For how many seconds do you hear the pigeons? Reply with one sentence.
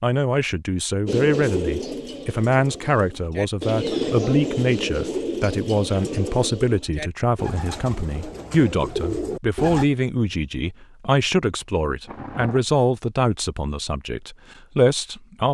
The pigeons can be heard for 9 seconds in total.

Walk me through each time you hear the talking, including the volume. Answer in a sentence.
You can hear the talking from 0.0 to 15.5 s, at a steady volume.